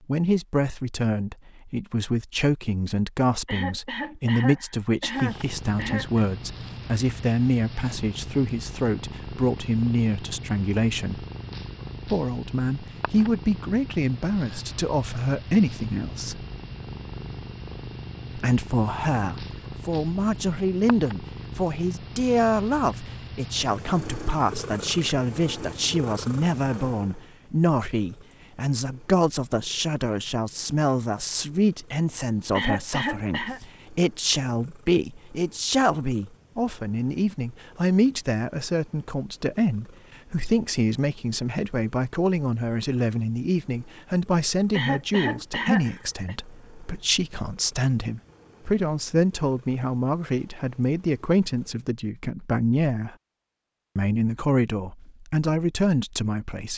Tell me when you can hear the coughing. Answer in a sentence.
The coughing can be heard from 3.5 to 6.2 s, from 32.5 to 33.6 s and from 44.7 to 46.4 s.